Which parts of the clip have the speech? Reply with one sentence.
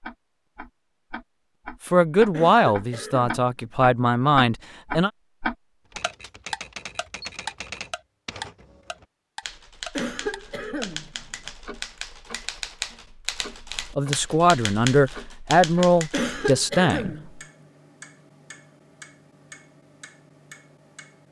You can hear the speech from 1.9 to 5.1 s and from 13.9 to 17.1 s.